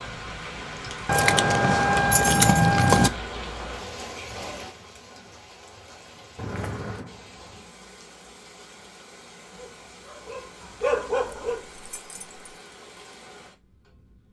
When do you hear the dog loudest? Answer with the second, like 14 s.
11 s.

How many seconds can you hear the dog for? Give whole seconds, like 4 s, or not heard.
2 s.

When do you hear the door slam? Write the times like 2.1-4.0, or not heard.
not heard.